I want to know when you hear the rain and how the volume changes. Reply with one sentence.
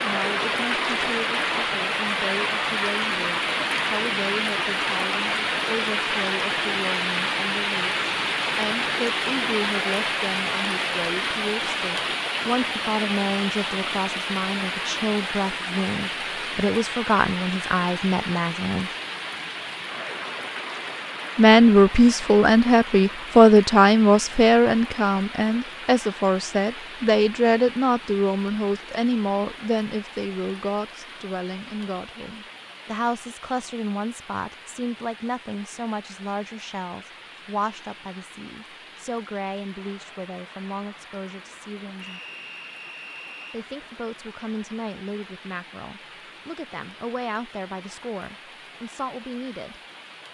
You can hear the rain from 0.0 to 50.2 s, getting quieter.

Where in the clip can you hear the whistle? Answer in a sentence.
You can hear the whistle from 42.0 to 43.6 s.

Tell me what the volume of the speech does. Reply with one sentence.
The volume of the speech goes up, then down.